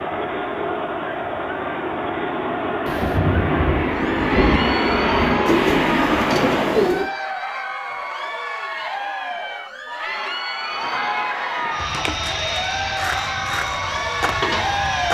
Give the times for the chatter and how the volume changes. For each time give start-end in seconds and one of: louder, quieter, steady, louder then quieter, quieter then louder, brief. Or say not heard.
0.0-15.0 steady.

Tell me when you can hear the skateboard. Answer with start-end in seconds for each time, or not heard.
11.8-15.0.